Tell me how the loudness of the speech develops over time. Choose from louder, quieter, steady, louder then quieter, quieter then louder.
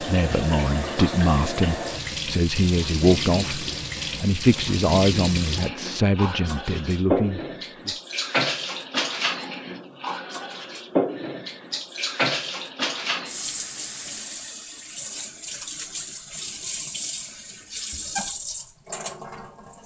steady.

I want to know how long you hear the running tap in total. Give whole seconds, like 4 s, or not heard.
20 s.